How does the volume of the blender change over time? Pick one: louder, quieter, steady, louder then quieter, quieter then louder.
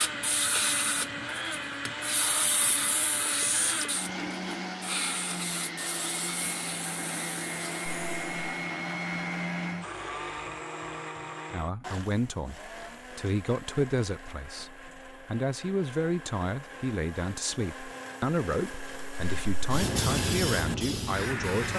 quieter then louder.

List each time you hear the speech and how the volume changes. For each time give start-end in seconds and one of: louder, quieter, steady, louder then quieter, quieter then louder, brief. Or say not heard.
11.5-21.7 steady.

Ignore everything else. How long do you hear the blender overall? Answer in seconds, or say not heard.
22 s.